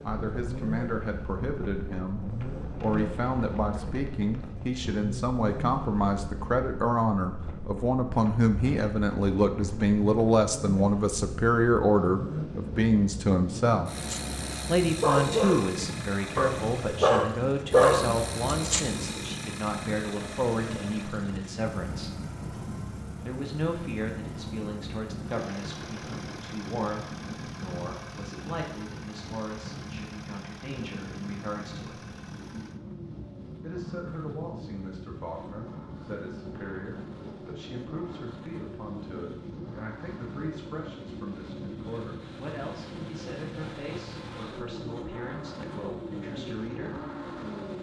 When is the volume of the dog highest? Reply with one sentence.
The loudest moment of the dog is at 18 seconds.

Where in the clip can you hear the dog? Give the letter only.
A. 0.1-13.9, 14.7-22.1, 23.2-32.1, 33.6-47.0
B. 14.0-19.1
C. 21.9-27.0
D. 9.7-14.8
B.